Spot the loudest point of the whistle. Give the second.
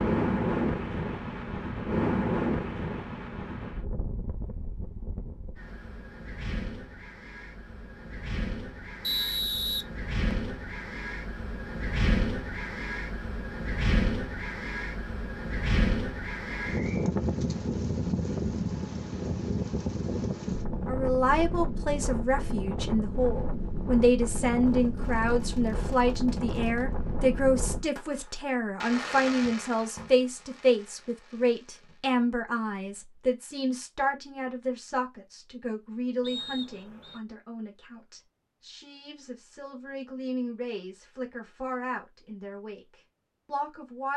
9 s.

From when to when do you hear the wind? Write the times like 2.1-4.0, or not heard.
0.0-27.9.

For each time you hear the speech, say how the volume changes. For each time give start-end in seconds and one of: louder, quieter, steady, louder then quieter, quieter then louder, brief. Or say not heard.
20.9-42.9 quieter
43.5-44.1 brief.